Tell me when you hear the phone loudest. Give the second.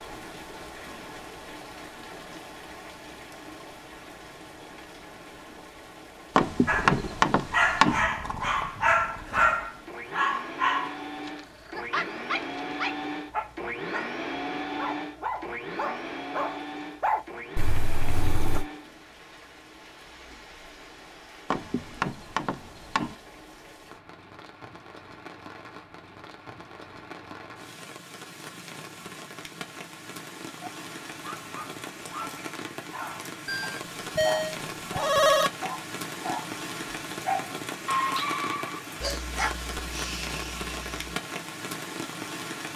35 s.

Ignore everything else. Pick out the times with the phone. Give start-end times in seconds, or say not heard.
17.6-18.6, 33.5-35.5.